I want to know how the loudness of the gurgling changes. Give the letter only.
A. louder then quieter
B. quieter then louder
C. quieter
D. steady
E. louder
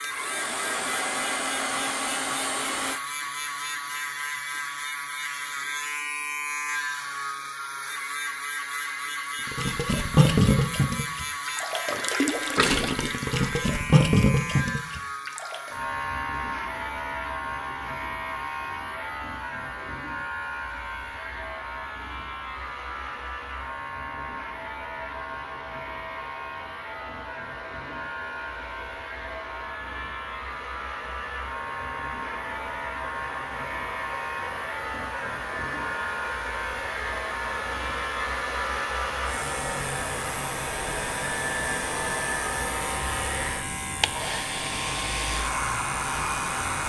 B.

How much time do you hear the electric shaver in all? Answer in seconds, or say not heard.
47 s.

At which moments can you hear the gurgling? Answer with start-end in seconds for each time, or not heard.
9.6-15.6.